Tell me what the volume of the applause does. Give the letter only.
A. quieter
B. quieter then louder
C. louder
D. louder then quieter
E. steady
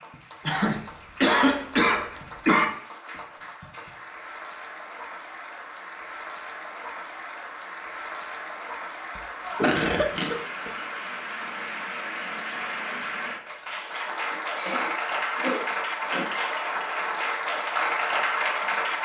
C.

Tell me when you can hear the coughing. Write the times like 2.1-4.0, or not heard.
0.5-2.7, 9.2-10.7, 14.3-16.2.